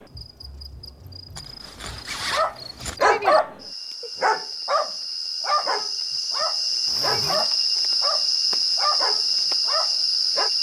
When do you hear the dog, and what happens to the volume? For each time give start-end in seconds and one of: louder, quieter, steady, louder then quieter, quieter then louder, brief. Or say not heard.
2.3-10.5 quieter.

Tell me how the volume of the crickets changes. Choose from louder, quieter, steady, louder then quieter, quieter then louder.
louder.